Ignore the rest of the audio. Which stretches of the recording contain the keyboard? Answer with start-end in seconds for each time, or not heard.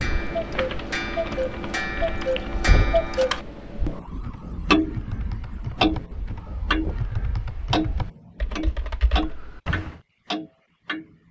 0.0-10.0.